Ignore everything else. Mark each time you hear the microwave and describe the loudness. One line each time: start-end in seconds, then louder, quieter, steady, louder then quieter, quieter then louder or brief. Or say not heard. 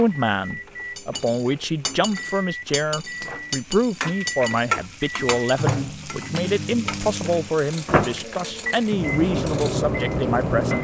0.0-10.7 louder.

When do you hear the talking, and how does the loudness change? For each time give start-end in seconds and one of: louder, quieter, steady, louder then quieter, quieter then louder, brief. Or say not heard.
0.0-10.7 steady.